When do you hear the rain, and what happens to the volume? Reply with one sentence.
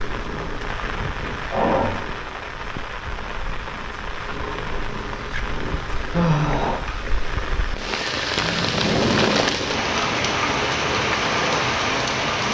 You can hear the rain from 0.0 to 12.4 s, getting louder.